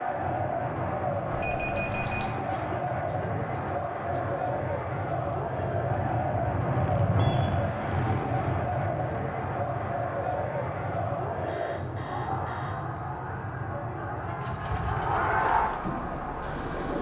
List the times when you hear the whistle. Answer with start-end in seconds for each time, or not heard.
not heard.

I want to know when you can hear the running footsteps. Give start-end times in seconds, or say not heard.
not heard.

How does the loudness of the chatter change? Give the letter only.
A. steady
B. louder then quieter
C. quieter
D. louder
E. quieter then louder
A.